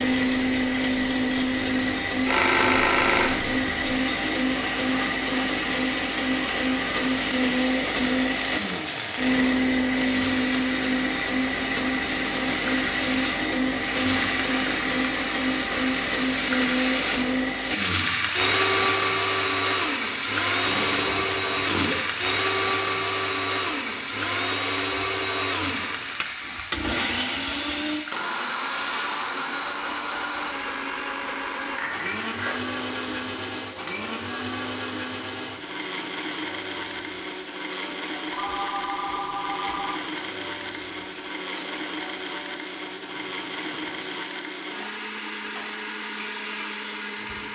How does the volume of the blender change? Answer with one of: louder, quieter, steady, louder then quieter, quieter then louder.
quieter.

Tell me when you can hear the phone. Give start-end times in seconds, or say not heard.
2.2-3.5, 20.6-22.1, 38.3-40.0.